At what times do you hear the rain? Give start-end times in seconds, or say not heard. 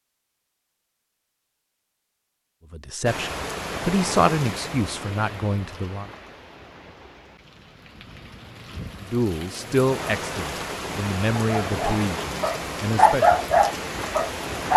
3.0-14.7.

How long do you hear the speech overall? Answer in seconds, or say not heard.
8 s.